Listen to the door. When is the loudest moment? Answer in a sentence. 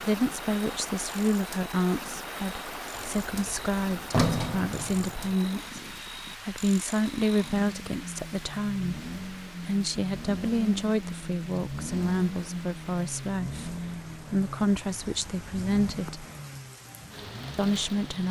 The loudest moment of the door is at 4 seconds.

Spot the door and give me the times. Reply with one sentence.
The door can be heard from 3.0 to 5.3 s.